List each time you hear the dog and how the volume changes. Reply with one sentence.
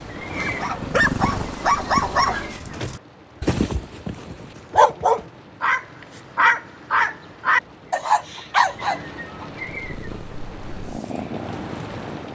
You can hear the dog from 0.3 to 9.4 s, getting quieter then louder.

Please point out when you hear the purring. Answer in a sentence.
You can hear the purring from 0.0 to 2.8 s and from 9.7 to 12.3 s.